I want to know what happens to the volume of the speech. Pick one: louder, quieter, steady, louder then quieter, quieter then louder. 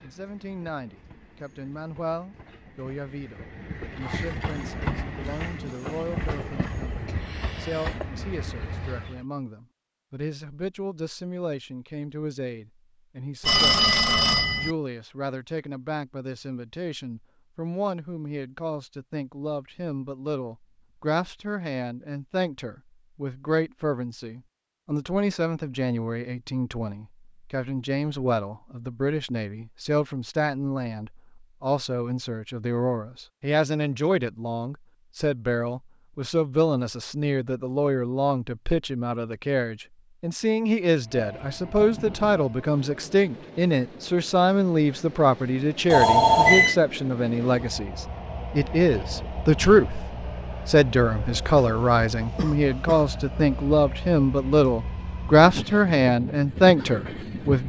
louder.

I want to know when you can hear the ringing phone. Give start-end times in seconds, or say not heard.
13.4-14.8, 45.9-46.8.